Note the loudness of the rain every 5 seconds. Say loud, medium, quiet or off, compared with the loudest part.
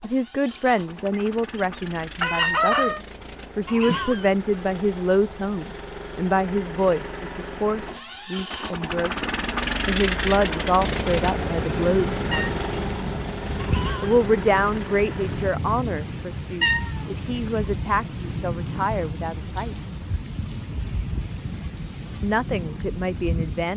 off, off, loud, loud, loud.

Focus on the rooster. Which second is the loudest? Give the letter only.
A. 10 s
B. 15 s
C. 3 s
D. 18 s
C.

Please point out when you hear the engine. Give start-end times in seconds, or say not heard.
0.0-15.5.